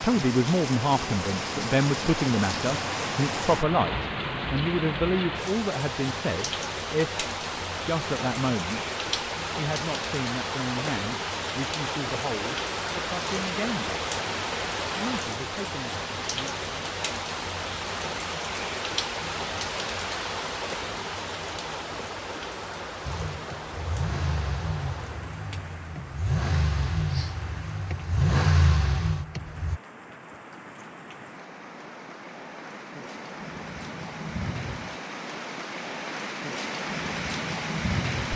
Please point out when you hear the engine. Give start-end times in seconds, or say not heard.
23.1-29.8.